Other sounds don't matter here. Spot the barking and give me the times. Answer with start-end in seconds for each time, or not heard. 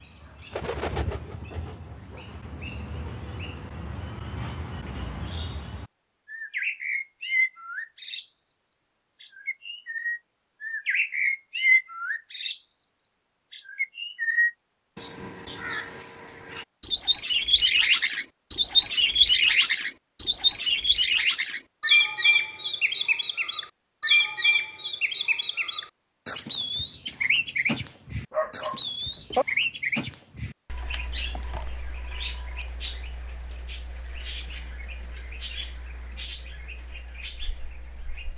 28.3-29.4.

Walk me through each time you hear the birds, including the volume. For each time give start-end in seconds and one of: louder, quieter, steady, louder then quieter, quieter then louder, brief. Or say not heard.
0.0-38.3 louder then quieter.